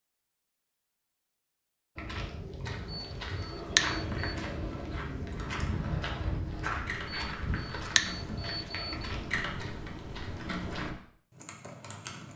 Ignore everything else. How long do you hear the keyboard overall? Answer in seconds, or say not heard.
7 s.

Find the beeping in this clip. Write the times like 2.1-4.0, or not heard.
2.9-4.3, 7.3-9.1.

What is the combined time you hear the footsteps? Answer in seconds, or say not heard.
9 s.